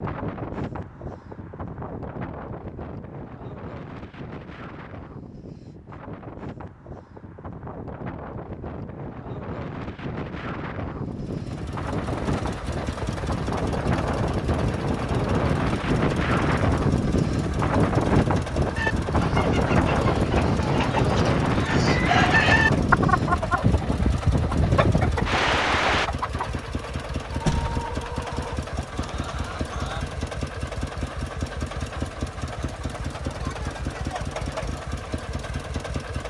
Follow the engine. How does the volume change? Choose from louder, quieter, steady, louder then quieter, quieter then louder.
steady.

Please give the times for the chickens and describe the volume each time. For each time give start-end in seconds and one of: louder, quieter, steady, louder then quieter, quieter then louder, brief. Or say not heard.
18.8-26.5 louder then quieter
27.3-30.2 brief.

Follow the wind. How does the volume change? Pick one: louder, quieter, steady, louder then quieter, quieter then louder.
louder.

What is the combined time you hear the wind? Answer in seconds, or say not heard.
26 s.